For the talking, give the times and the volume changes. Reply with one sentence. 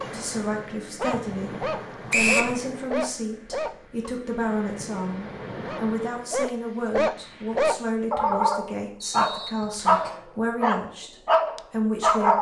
You can hear the talking from 0.0 to 12.3 s, at a steady volume.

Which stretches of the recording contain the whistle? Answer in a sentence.
You can hear the whistle from 2.1 to 2.5 s and from 9.0 to 10.1 s.